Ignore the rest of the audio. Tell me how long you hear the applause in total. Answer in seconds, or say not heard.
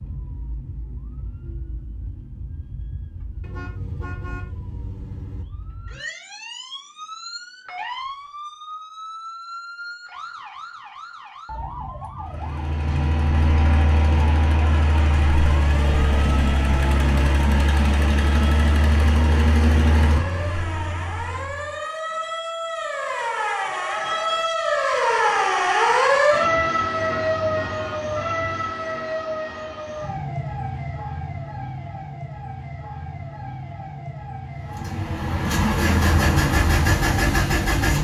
not heard.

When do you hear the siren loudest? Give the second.
26 s.